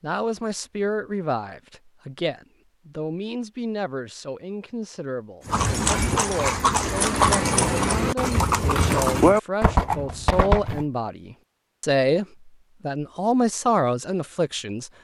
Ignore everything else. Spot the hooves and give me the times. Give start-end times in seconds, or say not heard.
5.5-10.8.